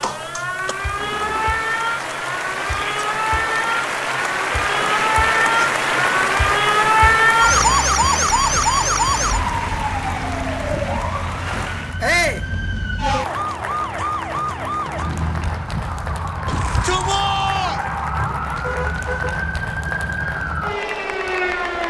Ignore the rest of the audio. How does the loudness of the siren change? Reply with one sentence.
The volume of the siren goes up, then down.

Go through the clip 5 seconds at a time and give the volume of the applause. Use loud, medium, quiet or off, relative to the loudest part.
loud, loud, medium, medium, medium.